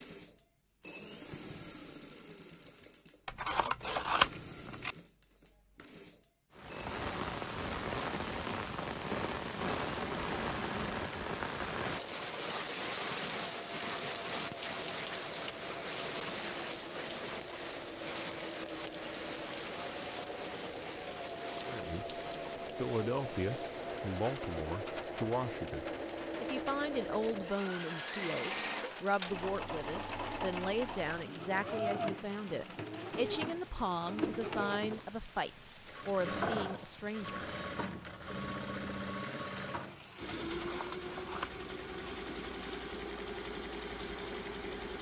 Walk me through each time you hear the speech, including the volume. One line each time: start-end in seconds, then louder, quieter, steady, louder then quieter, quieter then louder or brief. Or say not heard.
21.6-22.1 brief
22.8-37.5 steady.